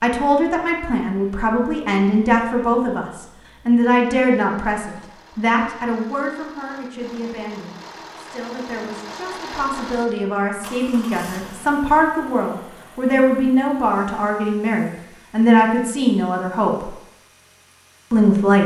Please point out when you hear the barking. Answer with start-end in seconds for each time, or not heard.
not heard.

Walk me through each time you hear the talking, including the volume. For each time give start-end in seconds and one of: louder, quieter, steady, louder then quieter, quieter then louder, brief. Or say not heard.
0.0-16.9 quieter then louder
18.1-18.6 brief.